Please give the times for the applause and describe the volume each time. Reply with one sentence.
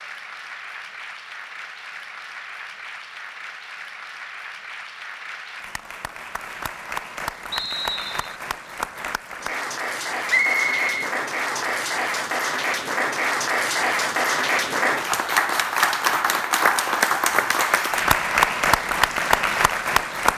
The applause can be heard from 0.0 to 20.3 s, getting louder.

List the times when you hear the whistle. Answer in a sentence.
The whistle can be heard from 7.5 to 8.4 s and from 10.2 to 11.8 s.